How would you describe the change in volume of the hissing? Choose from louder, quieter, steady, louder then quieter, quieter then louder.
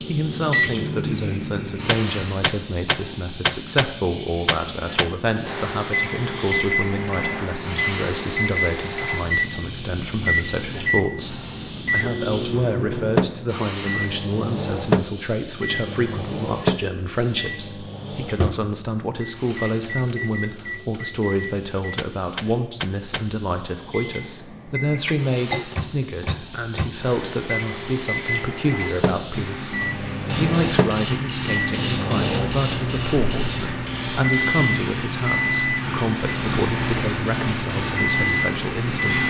quieter then louder.